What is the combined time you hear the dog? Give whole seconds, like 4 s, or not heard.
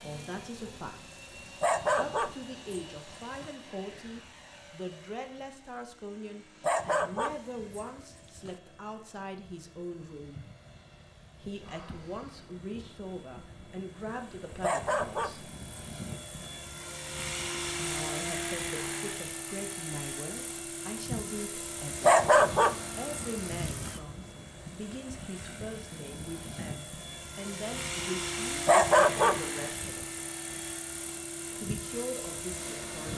9 s.